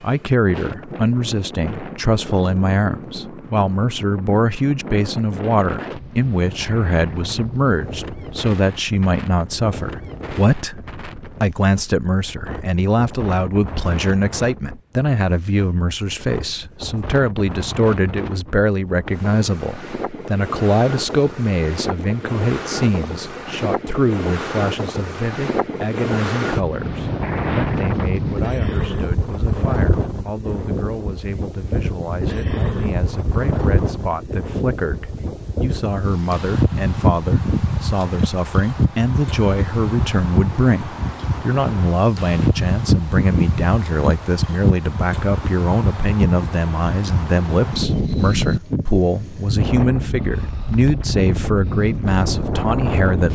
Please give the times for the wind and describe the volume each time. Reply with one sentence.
The wind can be heard from 0.0 to 53.3 s, getting louder.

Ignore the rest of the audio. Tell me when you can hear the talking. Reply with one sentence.
You can hear the talking from 0.0 to 53.3 s.